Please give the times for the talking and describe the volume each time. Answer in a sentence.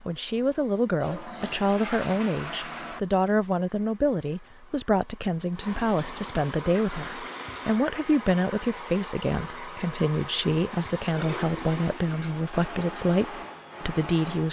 The talking can be heard from 0.0 to 14.4 s, at a steady volume.